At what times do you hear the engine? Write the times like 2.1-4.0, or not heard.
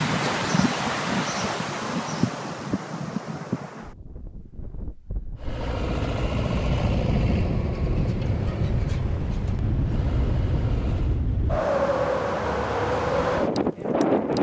5.3-11.2.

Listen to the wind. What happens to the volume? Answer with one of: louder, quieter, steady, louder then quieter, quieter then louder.
quieter then louder.